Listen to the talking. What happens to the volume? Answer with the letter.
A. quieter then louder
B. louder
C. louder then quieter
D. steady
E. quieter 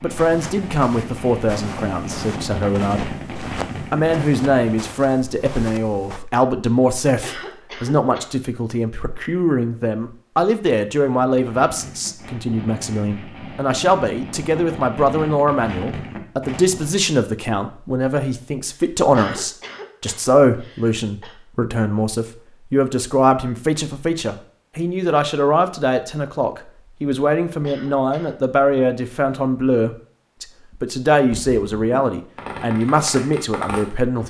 D.